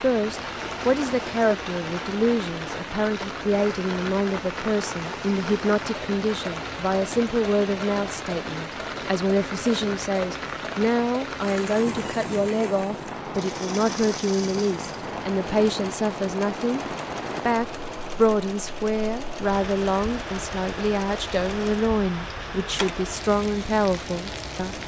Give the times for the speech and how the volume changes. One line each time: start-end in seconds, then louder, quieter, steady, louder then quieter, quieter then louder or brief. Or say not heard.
0.0-24.8 steady.